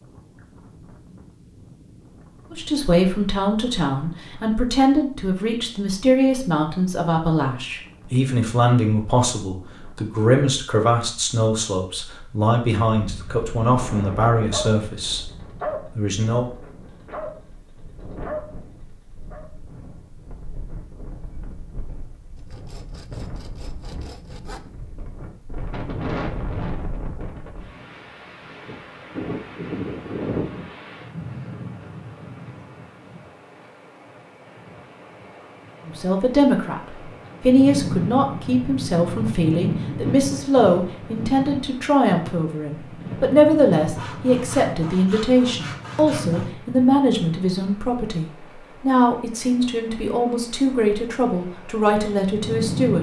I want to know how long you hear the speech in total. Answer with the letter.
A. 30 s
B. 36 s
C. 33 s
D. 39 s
A.